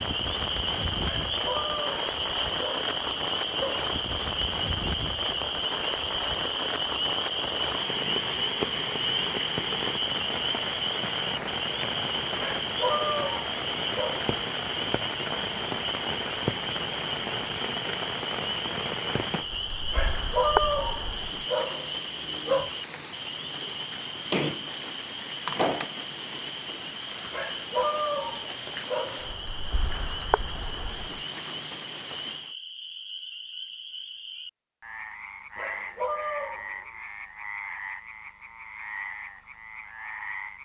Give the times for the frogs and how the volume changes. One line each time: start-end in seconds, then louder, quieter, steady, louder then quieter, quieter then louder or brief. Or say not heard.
0.0-40.6 quieter.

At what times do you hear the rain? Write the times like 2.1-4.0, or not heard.
0.0-32.5.